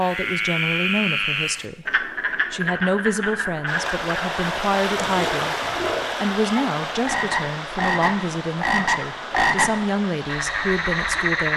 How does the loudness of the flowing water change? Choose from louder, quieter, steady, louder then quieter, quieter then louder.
quieter.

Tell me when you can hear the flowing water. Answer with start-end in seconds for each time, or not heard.
3.6-11.5.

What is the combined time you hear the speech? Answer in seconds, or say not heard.
11 s.